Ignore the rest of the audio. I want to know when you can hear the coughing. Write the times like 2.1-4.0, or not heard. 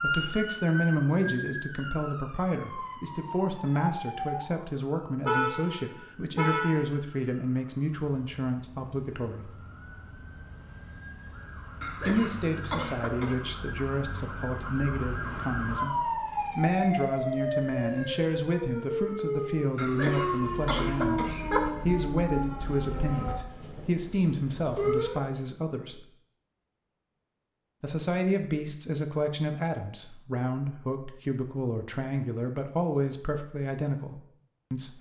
11.8-13.3, 19.8-21.7.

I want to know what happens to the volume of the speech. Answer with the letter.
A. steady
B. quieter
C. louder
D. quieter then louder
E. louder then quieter
A.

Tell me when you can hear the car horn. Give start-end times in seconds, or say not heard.
5.2-6.9.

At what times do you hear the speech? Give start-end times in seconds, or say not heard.
0.0-9.5, 12.1-26.1, 27.8-34.9.